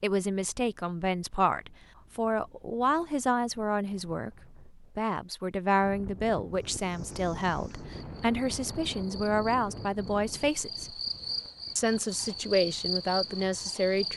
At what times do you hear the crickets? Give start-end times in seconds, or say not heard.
6.7-14.1.